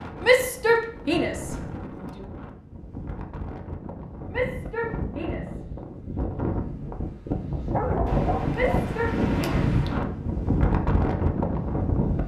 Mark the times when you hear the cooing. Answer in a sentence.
The cooing can't be heard in this clip.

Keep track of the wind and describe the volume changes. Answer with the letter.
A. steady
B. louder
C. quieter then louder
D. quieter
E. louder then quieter
B.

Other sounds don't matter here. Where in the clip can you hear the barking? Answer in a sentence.
You can hear the barking from 7.7 to 8.9 s.